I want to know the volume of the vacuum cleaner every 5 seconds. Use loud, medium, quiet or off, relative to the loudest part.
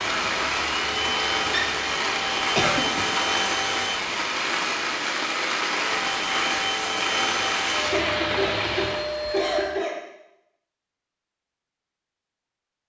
loud, loud, off.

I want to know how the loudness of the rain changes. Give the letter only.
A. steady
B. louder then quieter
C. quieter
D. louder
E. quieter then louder
A.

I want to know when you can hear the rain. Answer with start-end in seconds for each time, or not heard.
0.0-9.1.